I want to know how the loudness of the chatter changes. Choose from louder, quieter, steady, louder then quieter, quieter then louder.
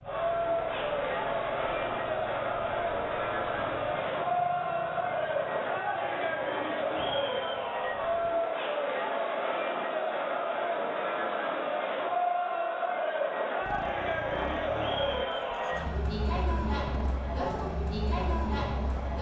steady.